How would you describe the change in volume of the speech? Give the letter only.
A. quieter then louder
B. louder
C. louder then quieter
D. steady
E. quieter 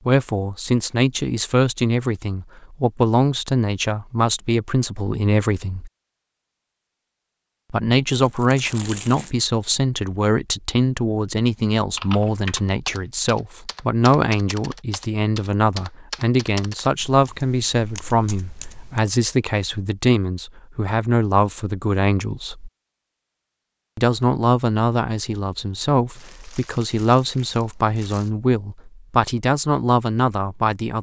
D.